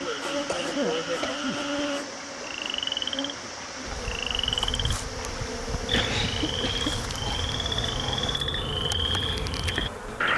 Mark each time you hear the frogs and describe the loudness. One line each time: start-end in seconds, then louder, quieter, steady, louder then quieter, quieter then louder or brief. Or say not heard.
0.0-10.3 louder.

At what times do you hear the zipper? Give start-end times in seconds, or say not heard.
not heard.